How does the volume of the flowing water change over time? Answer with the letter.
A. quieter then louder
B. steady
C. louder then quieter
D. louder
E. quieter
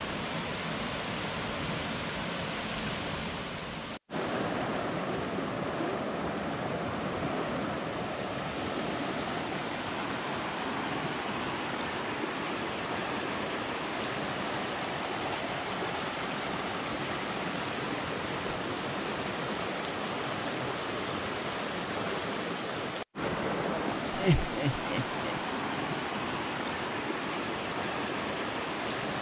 B.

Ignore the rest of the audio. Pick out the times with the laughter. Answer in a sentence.
The laughter can be heard from 24.1 to 25.4 s.